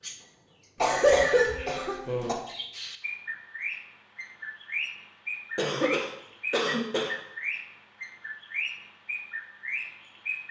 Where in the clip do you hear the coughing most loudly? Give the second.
1 s.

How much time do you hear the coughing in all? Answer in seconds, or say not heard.
3 s.